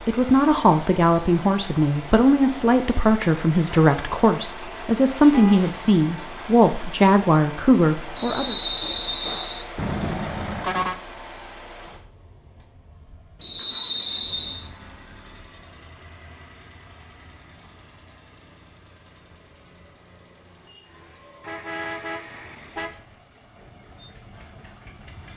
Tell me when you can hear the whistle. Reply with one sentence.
You can hear the whistle from 8.2 to 9.7 s and from 13.4 to 14.7 s.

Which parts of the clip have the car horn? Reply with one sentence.
You can hear the car horn from 5.3 to 5.8 s, from 9.8 to 10.9 s and from 21.4 to 23.0 s.